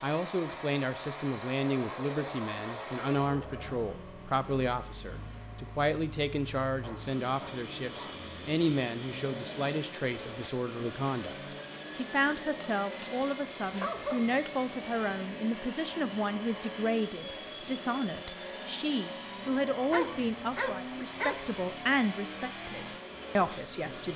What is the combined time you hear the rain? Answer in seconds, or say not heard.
not heard.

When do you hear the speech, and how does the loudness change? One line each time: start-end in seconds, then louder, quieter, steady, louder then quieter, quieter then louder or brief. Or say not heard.
0.0-24.1 steady.